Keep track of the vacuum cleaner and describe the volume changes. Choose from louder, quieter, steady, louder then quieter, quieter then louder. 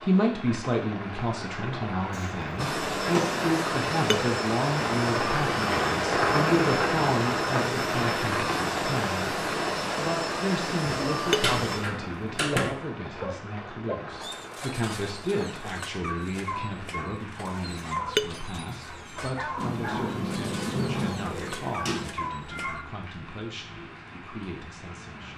steady.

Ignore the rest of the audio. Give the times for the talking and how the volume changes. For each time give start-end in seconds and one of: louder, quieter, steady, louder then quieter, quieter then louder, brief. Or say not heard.
0.0-25.3 quieter.